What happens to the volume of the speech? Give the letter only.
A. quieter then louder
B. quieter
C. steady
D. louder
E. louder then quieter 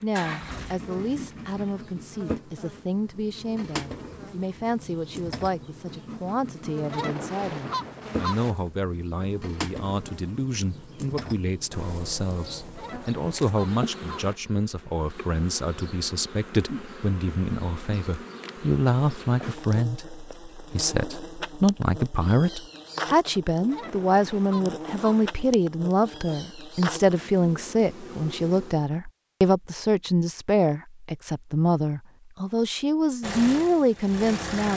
D.